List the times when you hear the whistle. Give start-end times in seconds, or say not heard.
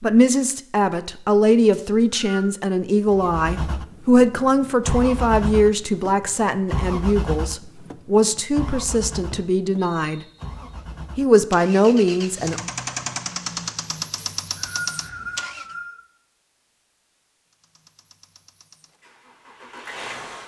1.7-2.5, 8.7-10.2, 14.2-16.0.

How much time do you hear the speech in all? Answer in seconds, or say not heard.
12 s.